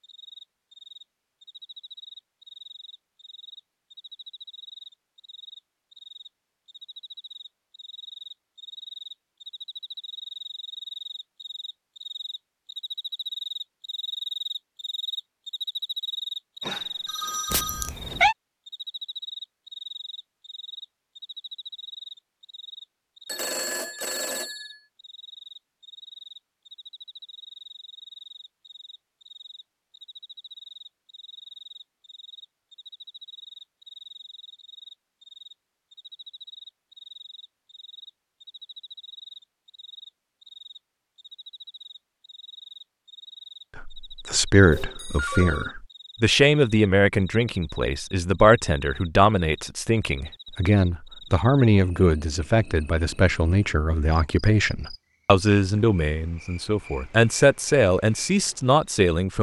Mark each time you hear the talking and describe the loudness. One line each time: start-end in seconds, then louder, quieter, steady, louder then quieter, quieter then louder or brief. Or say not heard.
43.8-59.3 steady.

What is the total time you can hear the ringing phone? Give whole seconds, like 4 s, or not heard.
4 s.